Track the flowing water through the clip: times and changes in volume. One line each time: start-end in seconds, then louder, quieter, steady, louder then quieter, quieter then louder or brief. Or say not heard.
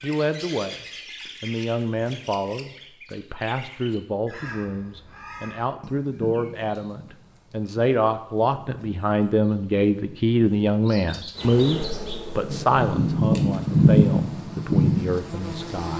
not heard.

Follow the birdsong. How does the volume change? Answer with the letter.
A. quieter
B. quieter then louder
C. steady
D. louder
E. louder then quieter
D.